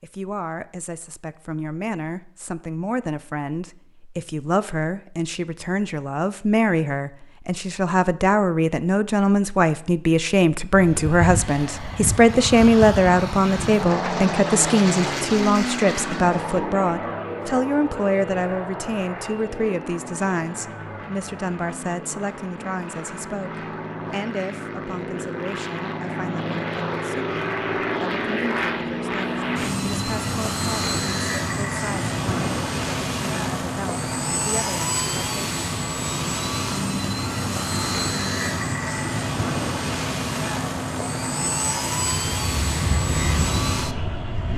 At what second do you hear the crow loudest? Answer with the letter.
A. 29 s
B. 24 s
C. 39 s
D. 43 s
D.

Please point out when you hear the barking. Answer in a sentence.
You can't hear the barking here.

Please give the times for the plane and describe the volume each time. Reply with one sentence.
You can hear the plane from 10.7 to 44.5 s, getting quieter then louder.